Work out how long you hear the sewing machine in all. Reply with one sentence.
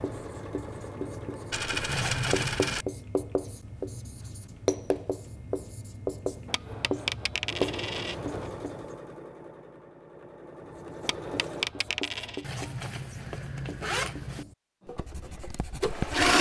You can hear the sewing machine for 8 seconds altogether.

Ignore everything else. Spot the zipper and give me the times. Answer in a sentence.
The zipper can be heard from 1.9 to 2.9 s and from 12.4 to 14.4 s.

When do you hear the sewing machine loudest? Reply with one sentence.
The volume of the sewing machine peaks at 16 seconds.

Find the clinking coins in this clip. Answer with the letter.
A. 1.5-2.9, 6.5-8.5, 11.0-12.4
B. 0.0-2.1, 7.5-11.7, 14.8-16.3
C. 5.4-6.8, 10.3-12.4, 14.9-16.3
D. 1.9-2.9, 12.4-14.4
A.